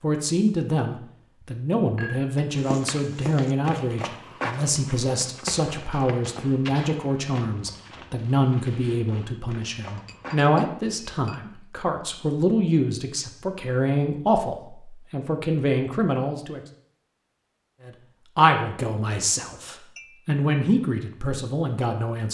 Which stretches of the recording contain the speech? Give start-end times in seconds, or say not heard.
0.0-16.6, 17.9-22.2.